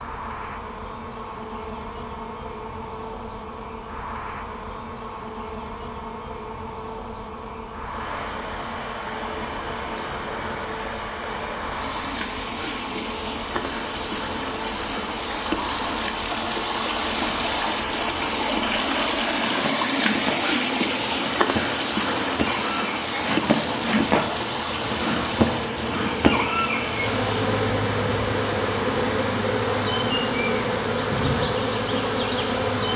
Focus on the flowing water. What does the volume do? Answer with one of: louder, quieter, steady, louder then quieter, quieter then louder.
louder then quieter.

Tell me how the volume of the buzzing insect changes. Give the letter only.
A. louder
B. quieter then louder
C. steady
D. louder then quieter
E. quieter
A.